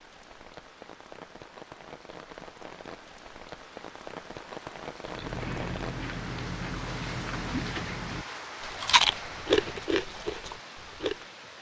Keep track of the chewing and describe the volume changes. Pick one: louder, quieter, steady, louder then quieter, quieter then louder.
louder then quieter.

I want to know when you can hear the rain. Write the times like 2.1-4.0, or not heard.
0.0-11.5.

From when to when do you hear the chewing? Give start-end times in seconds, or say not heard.
5.0-11.2.